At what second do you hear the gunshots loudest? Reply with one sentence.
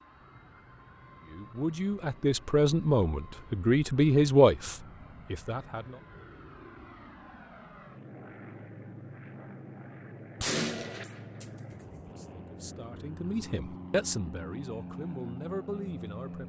The loudest moment of the gunshots is at 11 seconds.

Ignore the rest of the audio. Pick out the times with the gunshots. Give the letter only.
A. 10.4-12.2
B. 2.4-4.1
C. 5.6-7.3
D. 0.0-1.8
A.